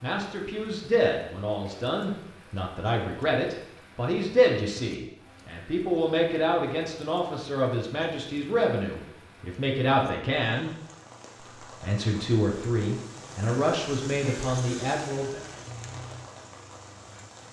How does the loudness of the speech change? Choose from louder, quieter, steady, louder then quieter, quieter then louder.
steady.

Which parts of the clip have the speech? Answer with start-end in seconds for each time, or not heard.
0.0-10.7, 11.6-15.4.